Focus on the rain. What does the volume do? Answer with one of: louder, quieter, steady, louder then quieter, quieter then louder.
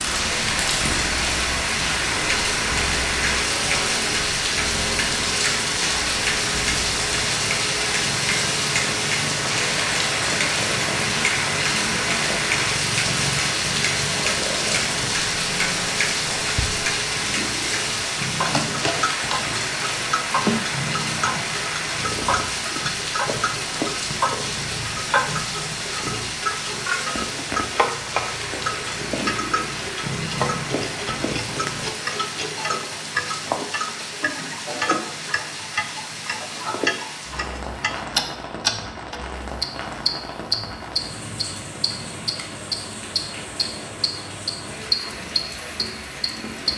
quieter.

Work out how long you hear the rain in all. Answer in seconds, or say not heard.
47 s.